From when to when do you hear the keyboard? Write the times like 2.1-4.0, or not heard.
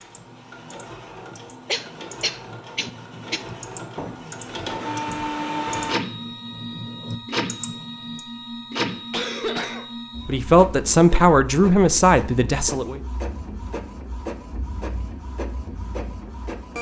0.0-8.2.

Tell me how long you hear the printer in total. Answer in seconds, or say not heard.
17 s.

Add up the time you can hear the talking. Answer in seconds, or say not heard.
3 s.